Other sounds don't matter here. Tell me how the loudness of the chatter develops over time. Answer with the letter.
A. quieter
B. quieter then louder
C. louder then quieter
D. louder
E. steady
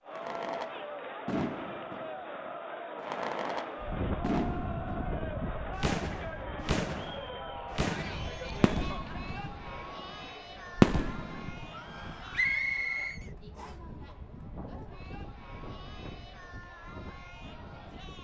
A.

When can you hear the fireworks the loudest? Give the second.
11 s.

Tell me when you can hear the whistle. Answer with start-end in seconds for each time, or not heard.
12.3-13.8.